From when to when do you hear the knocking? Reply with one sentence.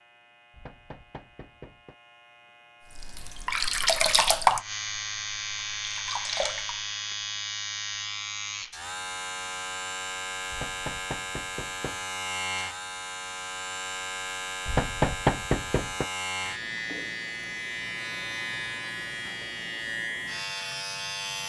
The knocking can be heard from 0.5 to 1.9 s, from 10.5 to 12.1 s and from 14.7 to 16.1 s.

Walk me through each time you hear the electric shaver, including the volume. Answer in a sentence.
You can hear the electric shaver from 0.0 to 21.4 s, getting louder.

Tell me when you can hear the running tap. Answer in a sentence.
The running tap can be heard from 3.0 to 6.8 s.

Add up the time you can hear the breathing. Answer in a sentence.
You can't hear the breathing here.